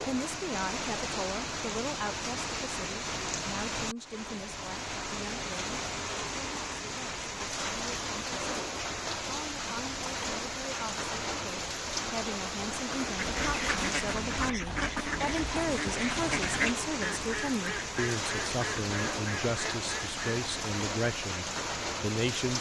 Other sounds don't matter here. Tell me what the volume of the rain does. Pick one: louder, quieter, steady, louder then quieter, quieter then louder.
steady.